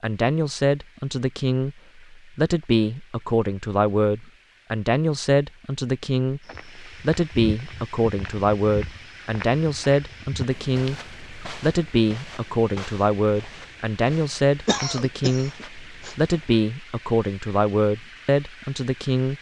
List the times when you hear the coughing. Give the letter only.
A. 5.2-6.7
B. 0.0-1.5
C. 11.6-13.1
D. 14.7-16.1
D.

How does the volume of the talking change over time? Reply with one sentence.
The loudness of the talking stays about the same.